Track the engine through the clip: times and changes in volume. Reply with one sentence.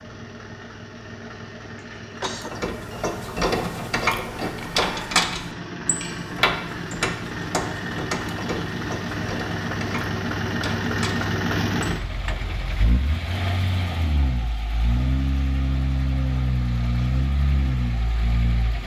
You can hear the engine from 0.0 to 18.8 s, getting louder.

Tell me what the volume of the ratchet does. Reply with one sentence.
The volume of the ratchet goes down.